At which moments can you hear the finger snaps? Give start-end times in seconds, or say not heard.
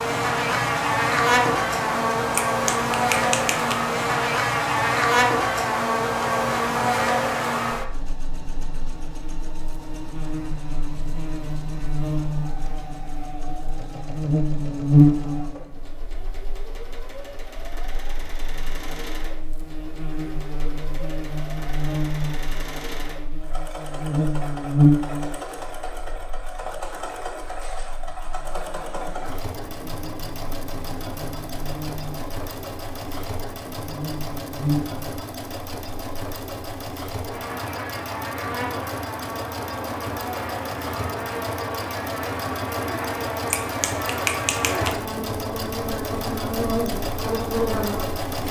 2.3-3.9, 43.5-45.0.